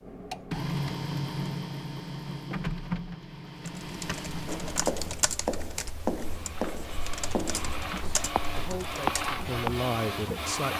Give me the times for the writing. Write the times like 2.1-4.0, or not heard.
4.5-9.8.